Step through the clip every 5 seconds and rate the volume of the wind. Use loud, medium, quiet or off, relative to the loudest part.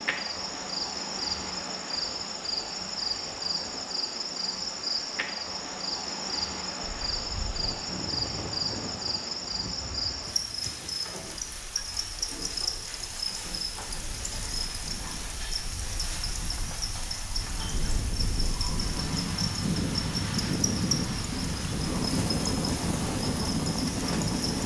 off, quiet, quiet, medium, loud.